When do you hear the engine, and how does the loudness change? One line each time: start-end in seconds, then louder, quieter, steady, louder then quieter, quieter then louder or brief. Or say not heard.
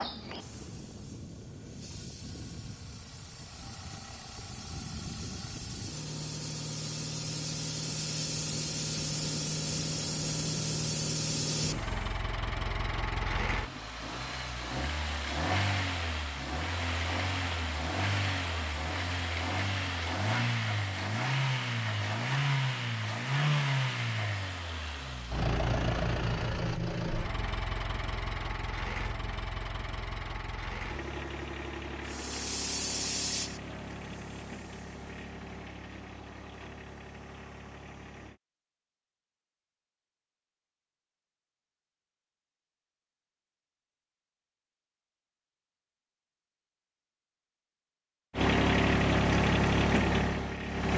0.0-38.4 louder then quieter
48.3-50.9 brief.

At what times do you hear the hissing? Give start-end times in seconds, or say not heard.
0.0-12.2, 32.0-35.1.